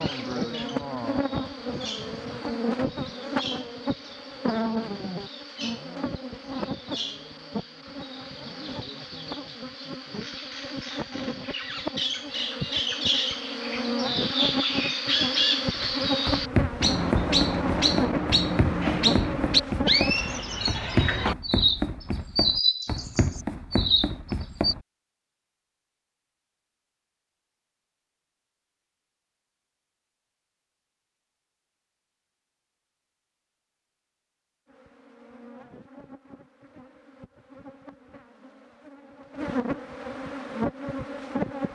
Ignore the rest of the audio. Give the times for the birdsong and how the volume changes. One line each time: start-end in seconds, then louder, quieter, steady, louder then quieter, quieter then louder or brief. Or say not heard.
0.0-24.8 louder.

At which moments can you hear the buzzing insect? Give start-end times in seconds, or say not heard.
0.0-20.4, 34.6-41.7.